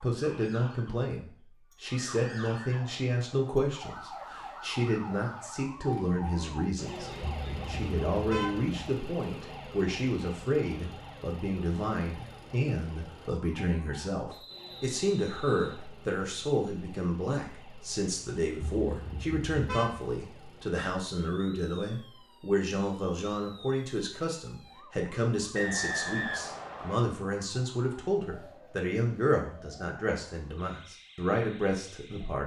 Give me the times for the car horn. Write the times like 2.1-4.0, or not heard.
7.2-8.7, 18.6-20.1.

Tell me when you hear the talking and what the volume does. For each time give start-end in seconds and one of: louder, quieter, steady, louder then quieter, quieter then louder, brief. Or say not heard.
0.0-32.4 steady.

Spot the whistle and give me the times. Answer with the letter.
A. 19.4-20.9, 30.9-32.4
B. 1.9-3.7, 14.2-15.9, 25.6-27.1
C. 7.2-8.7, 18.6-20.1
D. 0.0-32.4
B.